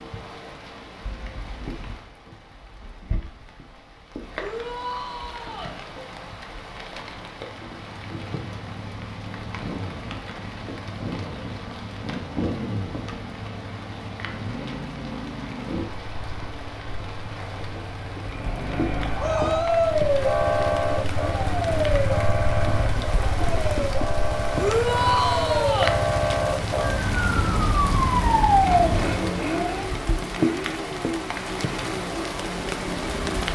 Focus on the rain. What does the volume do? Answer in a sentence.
The volume of the rain goes up.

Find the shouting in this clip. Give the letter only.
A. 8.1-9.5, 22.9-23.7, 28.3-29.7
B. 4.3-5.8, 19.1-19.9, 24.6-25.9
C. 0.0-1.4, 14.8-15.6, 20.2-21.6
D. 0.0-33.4
B.